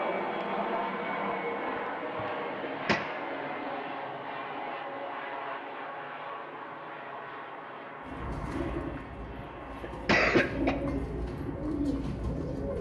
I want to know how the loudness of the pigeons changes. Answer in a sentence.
The loudness of the pigeons goes down, then up.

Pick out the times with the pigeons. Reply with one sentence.
The pigeons can be heard from 8.1 to 12.7 s.